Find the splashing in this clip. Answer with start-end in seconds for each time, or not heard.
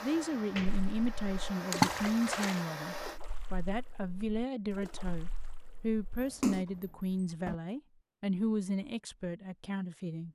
0.7-6.7.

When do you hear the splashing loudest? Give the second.
2 s.